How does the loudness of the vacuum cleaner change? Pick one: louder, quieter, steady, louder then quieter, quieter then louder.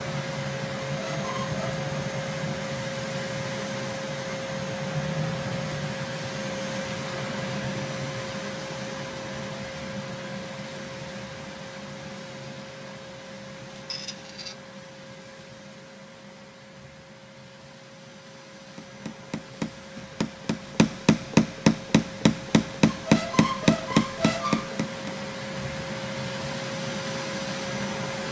quieter then louder.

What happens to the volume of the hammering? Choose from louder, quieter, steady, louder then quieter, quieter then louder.
louder.